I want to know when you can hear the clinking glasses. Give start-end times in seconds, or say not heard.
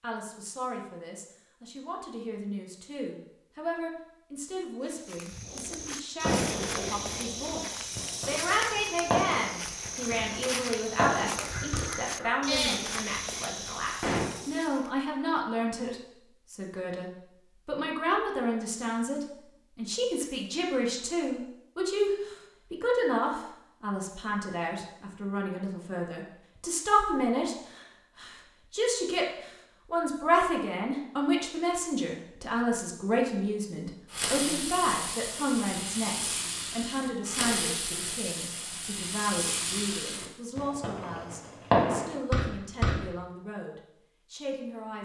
not heard.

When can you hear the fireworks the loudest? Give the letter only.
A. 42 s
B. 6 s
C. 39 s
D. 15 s
A.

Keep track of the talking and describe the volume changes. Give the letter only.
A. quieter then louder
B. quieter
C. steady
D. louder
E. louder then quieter
E.